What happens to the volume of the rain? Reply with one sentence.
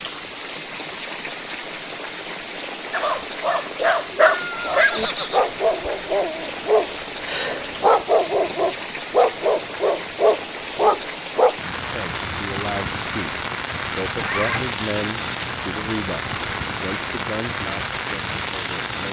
The loudness of the rain stays about the same.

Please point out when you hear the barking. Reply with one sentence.
You can hear the barking from 2.9 to 11.6 s.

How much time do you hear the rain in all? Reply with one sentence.
You can hear the rain for 19 seconds altogether.